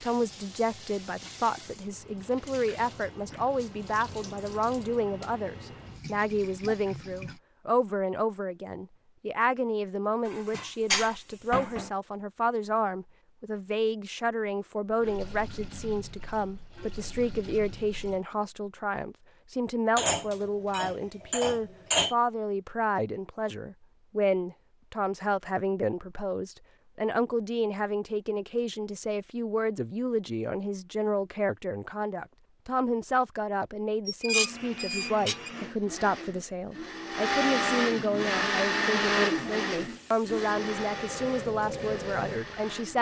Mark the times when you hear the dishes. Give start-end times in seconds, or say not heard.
10.2-11.9, 19.9-22.1, 34.0-35.5.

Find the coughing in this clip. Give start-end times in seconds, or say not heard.
not heard.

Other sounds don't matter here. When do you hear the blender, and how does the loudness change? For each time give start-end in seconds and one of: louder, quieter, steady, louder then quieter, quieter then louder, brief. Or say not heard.
34.3-42.9 louder then quieter.